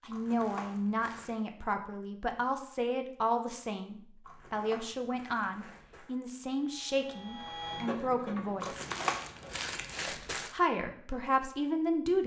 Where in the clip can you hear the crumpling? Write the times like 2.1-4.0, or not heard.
0.1-1.4, 4.2-6.2, 8.6-10.6.